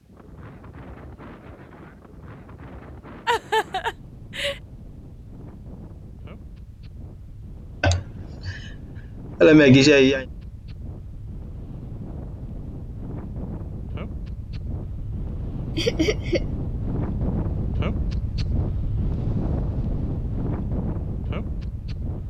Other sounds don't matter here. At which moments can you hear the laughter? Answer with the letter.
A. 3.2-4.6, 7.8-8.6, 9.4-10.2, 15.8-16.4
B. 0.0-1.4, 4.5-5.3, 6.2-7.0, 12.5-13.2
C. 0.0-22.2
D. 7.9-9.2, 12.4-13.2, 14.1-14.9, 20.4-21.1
A.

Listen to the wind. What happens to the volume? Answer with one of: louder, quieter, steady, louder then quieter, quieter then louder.
louder.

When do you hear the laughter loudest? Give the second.
10 s.